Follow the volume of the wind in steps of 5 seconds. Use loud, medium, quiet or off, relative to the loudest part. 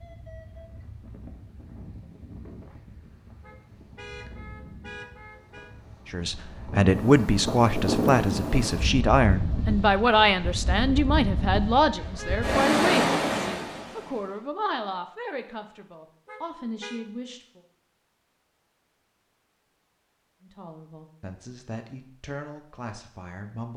quiet, loud, loud, off, off.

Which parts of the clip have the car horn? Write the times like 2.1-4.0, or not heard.
3.4-5.8, 12.2-12.6, 16.2-17.0.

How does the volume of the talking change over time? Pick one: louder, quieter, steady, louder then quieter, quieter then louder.
quieter.